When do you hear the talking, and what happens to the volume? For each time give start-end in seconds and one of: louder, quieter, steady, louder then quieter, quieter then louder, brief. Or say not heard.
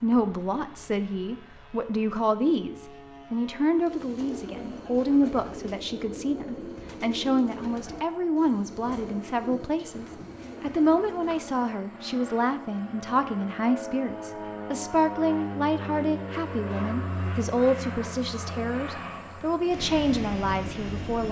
0.0-21.2 steady.